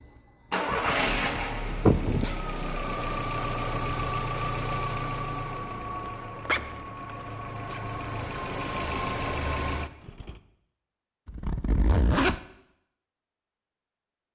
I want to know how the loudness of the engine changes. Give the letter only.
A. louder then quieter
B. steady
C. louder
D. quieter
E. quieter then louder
E.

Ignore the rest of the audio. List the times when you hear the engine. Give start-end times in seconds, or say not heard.
0.0-10.4.